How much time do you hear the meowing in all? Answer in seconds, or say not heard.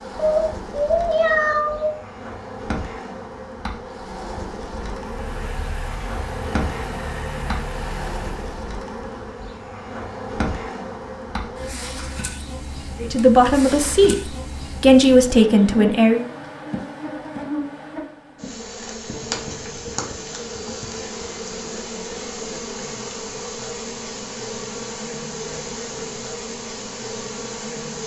2 s.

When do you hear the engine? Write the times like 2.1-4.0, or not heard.
5.0-8.7.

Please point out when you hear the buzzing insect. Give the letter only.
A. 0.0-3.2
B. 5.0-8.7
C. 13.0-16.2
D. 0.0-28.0
D.